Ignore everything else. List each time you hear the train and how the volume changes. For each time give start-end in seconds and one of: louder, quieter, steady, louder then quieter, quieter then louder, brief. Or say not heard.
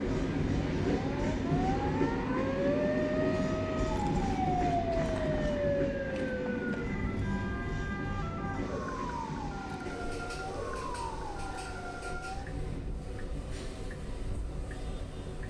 0.0-15.4 quieter.